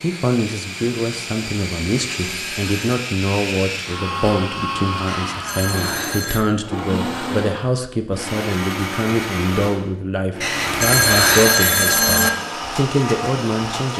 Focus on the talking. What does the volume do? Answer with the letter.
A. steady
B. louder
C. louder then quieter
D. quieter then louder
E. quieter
A.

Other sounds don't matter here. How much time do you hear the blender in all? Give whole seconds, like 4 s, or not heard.
14 s.